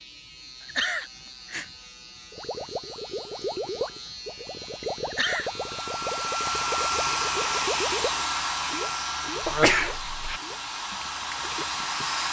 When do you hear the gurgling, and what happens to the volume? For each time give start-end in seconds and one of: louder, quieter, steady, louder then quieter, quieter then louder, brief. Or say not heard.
2.3-12.2 quieter.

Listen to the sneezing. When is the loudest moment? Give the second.
10 s.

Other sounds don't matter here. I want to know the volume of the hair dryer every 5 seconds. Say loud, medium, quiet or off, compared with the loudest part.
off, loud, loud.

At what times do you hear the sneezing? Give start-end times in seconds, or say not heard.
0.6-1.7, 5.1-5.5, 9.4-10.4.